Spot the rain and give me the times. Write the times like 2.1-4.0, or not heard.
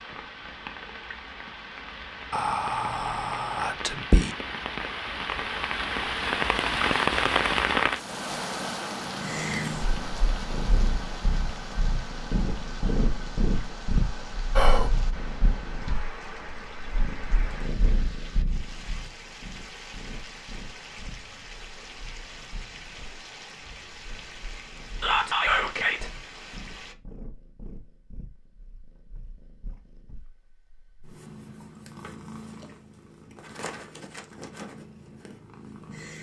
0.0-26.9.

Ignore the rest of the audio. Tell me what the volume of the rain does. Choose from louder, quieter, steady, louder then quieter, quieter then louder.
louder then quieter.